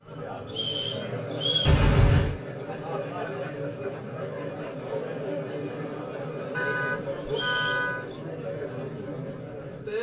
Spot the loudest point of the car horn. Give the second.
2 s.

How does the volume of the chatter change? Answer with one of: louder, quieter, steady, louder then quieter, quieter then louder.
steady.